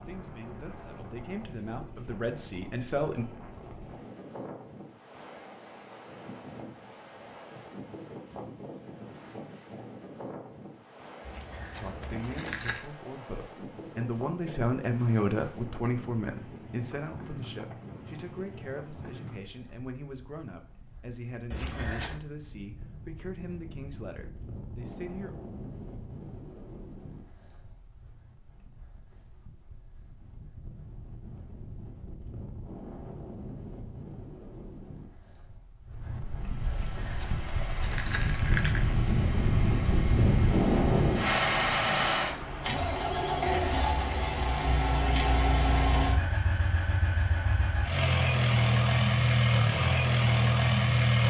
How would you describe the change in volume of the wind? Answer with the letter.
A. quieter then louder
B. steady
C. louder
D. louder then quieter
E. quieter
C.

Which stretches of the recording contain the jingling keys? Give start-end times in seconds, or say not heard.
11.2-12.8, 21.5-22.2, 36.6-39.0.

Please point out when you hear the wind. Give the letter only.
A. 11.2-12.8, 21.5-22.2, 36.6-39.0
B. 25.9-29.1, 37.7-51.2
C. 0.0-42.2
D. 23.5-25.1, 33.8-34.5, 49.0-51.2
C.